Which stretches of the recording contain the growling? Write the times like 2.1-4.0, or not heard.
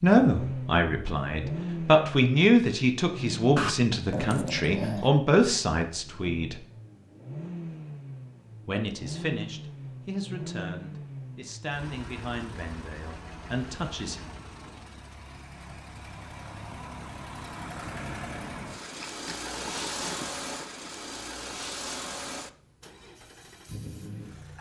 3.5-5.1, 18.9-20.6.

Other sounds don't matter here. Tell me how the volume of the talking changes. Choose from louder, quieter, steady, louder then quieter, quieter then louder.
quieter.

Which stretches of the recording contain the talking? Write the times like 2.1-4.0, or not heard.
0.0-6.6, 8.7-14.2.